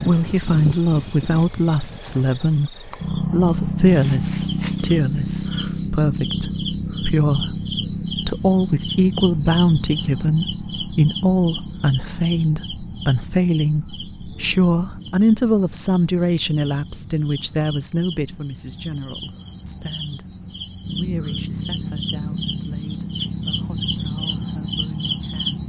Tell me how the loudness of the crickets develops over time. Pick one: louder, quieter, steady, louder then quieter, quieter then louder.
quieter then louder.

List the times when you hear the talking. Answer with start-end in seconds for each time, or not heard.
0.0-25.6.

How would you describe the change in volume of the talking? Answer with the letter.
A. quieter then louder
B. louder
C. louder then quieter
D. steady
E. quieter
E.